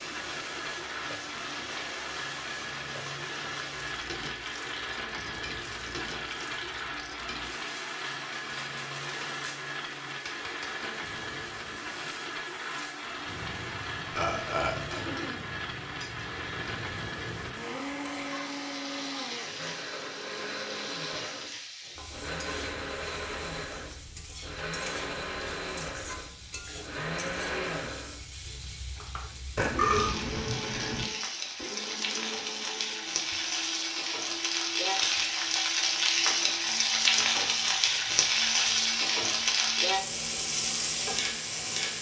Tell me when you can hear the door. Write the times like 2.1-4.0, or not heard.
not heard.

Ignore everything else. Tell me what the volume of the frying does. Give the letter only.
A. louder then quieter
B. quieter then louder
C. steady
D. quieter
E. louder
E.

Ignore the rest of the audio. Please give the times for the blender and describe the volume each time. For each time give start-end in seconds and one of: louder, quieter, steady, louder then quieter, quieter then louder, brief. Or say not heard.
0.0-41.9 quieter.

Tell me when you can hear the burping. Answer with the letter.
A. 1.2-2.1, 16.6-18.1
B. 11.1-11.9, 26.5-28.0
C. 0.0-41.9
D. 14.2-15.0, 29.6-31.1
D.